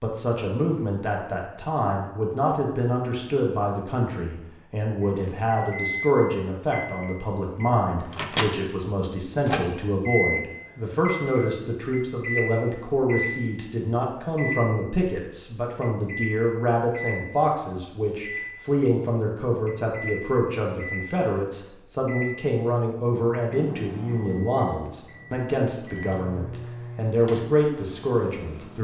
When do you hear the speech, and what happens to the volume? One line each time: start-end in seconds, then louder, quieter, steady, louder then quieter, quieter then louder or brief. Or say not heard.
0.0-28.8 steady.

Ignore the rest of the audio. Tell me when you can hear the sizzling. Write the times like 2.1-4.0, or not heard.
not heard.